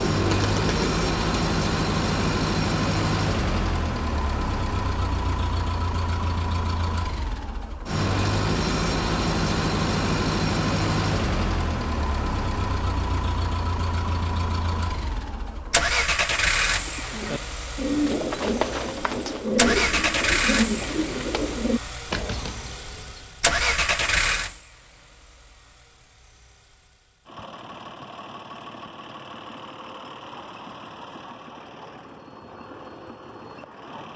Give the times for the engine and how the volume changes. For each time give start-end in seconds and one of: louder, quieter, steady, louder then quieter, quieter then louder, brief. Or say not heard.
0.0-34.1 quieter.